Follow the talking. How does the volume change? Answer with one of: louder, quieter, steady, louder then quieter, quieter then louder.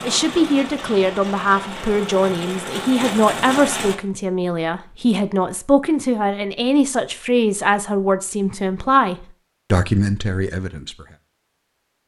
steady.